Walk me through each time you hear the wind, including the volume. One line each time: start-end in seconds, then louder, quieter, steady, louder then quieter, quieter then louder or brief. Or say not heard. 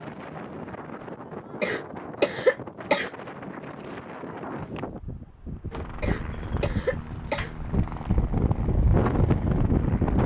0.0-10.2 louder.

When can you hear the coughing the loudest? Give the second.
2 s.